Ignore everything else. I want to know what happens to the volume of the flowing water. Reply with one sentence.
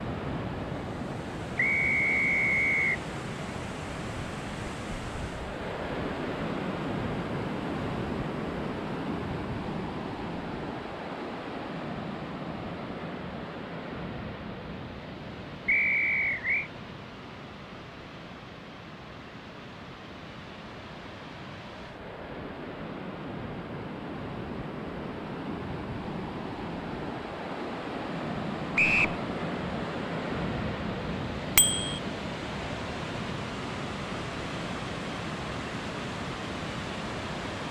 The volume of the flowing water goes down, then up.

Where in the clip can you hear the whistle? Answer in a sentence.
You can hear the whistle from 1.6 to 3.0 s, from 15.7 to 16.7 s and from 28.8 to 29.2 s.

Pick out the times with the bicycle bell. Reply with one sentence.
The bicycle bell can be heard from 31.6 to 32.0 s.